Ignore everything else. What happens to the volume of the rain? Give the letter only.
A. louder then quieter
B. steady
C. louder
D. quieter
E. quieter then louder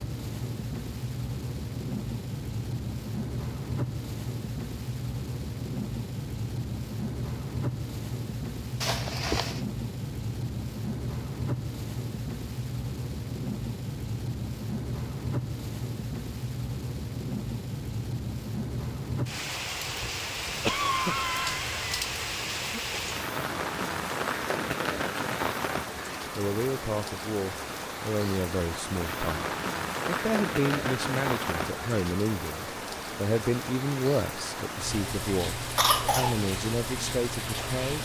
B.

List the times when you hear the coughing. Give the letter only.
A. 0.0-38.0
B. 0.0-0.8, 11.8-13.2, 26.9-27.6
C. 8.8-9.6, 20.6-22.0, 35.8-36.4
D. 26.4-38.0
C.